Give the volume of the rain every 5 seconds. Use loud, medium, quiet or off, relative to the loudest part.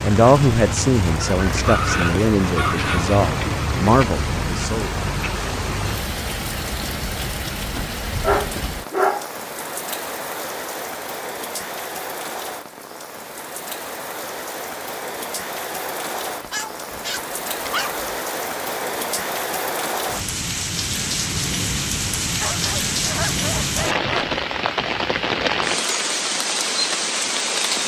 loud, medium, medium, medium, loud, loud.